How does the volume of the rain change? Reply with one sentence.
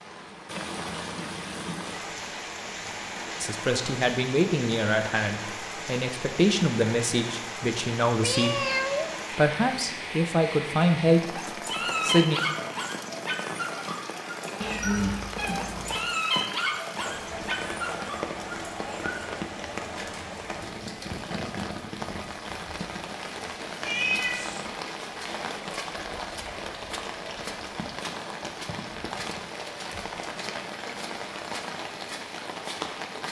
The volume of the rain stays about the same.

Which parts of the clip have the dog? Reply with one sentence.
The dog can be heard from 11.3 to 19.3 s.